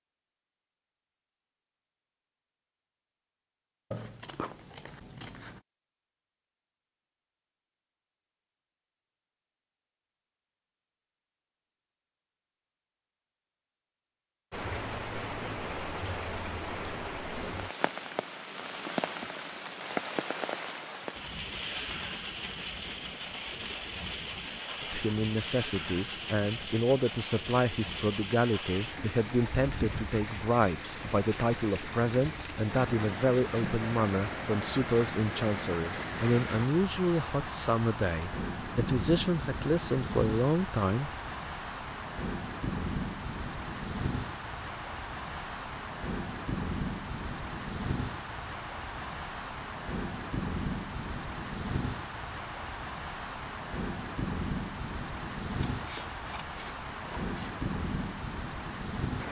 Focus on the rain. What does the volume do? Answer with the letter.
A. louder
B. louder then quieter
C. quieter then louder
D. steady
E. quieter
D.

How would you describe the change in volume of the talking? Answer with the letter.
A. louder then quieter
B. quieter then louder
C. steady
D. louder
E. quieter
C.